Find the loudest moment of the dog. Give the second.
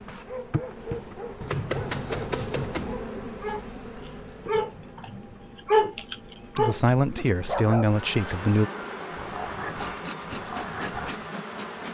6 s.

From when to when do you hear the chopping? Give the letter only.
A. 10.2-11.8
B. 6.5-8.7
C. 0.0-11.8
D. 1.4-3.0
D.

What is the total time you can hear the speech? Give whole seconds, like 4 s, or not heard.
2 s.